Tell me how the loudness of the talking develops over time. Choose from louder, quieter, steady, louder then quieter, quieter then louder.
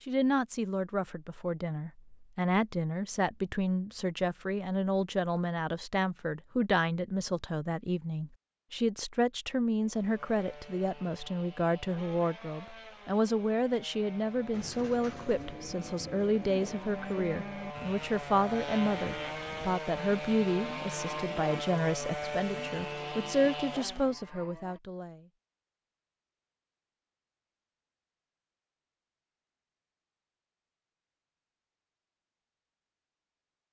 steady.